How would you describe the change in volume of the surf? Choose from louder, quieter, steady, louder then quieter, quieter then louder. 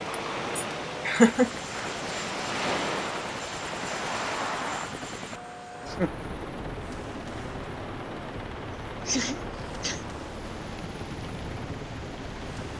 quieter.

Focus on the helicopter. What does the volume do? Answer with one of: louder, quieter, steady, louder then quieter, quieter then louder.
steady.